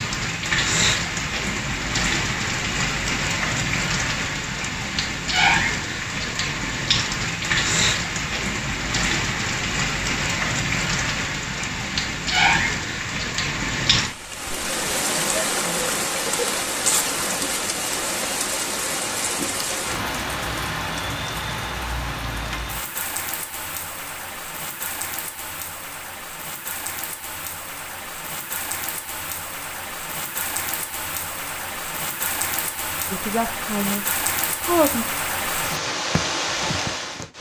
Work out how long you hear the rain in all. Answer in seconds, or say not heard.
37 s.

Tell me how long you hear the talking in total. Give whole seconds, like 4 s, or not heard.
2 s.